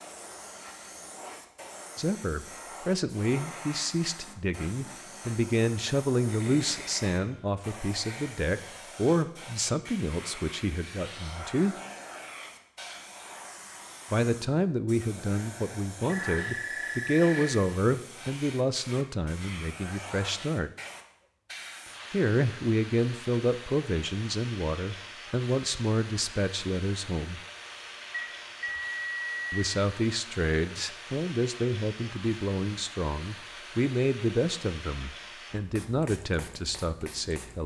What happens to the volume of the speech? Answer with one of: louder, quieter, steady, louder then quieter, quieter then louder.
steady.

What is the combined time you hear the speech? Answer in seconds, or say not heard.
30 s.